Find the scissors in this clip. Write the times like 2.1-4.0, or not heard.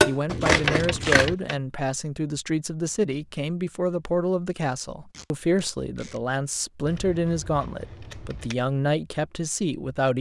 0.2-1.4, 6.8-8.6.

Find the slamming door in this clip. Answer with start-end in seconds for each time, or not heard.
not heard.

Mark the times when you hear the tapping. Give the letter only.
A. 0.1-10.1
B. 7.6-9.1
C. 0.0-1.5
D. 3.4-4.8
C.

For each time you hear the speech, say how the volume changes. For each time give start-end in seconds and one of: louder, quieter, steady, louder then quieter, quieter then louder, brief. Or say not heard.
0.1-10.1 steady.